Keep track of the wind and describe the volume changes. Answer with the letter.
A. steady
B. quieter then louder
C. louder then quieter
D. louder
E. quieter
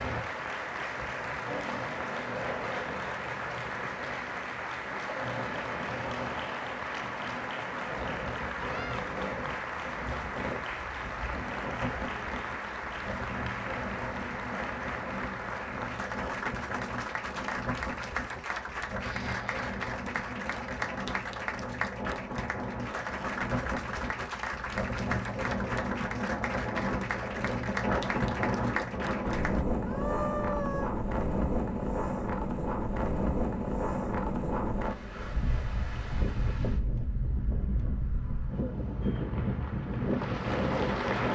D.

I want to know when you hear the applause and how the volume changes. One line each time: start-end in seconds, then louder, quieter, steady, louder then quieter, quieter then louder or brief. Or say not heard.
0.0-29.6 steady
39.0-41.2 brief.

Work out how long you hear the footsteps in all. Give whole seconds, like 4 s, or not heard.
not heard.